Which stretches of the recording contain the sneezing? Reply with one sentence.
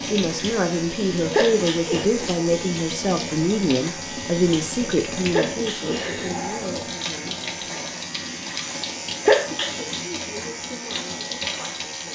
You can hear the sneezing from 1.3 to 2.0 s, from 5.3 to 6.3 s and from 9.2 to 9.8 s.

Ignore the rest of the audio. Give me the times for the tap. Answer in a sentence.
You can hear the tap from 0.0 to 12.1 s.